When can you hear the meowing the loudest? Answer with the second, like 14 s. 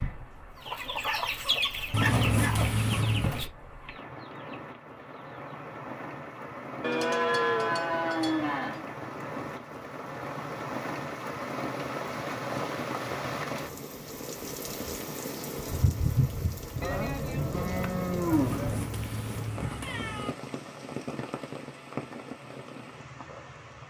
2 s.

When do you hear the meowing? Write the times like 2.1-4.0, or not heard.
1.9-3.5, 18.3-20.4.